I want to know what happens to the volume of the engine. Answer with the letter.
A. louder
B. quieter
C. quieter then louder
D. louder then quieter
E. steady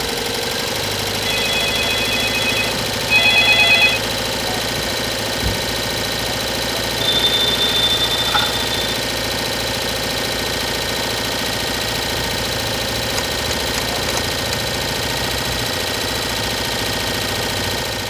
E.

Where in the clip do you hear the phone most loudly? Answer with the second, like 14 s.
4 s.